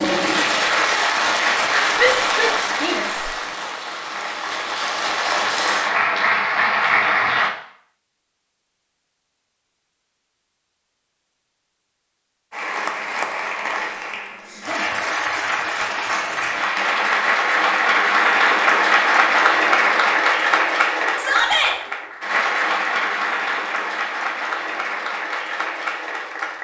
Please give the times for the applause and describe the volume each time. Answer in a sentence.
You can hear the applause from 0.0 to 7.5 s, getting quieter then louder; and from 12.5 to 26.5 s, getting louder then quieter.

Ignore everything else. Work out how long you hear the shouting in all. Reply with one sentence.
The shouting can be heard for 2 seconds in total.